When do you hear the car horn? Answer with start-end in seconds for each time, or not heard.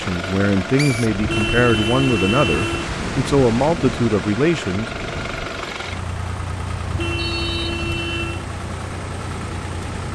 1.2-2.9, 6.8-8.4.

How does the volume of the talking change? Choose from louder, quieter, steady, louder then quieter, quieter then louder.
steady.